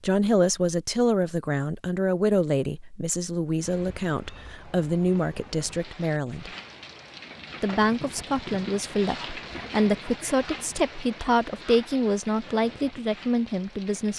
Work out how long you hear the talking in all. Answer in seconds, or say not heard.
13 s.